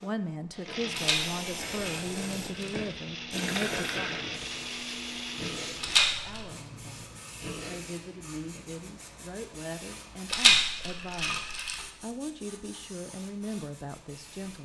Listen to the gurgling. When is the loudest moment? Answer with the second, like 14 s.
4 s.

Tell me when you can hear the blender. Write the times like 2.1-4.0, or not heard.
0.0-6.1.